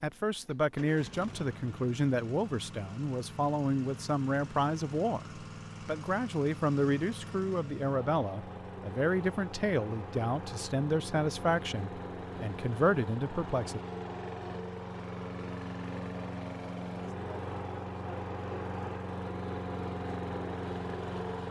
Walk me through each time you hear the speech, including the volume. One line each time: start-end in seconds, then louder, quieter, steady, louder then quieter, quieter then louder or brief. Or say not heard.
0.0-13.8 steady.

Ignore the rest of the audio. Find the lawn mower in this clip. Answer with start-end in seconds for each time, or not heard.
0.0-21.4.